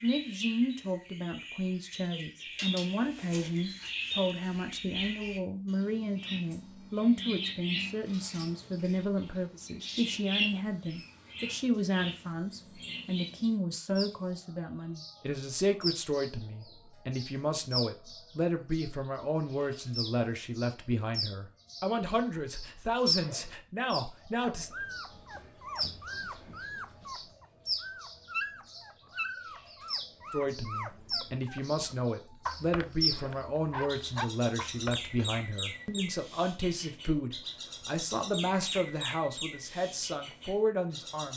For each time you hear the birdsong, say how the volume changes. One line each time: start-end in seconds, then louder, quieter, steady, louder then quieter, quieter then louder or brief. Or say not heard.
0.0-41.3 steady.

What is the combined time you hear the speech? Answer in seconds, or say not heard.
36 s.